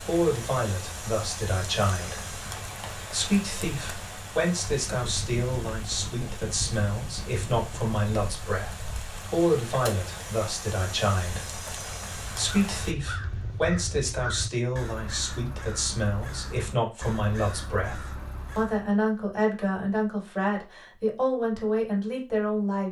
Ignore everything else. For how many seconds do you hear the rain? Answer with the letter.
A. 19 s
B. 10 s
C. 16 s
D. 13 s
D.